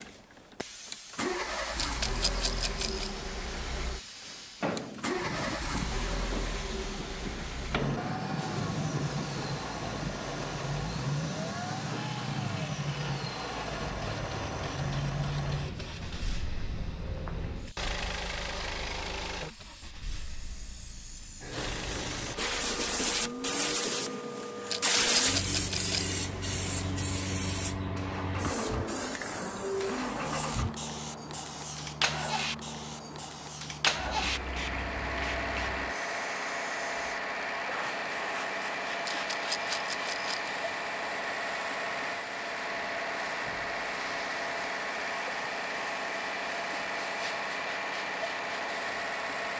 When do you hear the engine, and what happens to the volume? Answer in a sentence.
You can hear the engine from 0.0 to 49.5 s, getting quieter then louder.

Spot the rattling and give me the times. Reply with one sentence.
You can hear the rattling from 1.8 to 3.1 s, from 24.7 to 26.1 s and from 39.0 to 40.5 s.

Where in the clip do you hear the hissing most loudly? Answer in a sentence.
The volume of the hissing peaks at 25 seconds.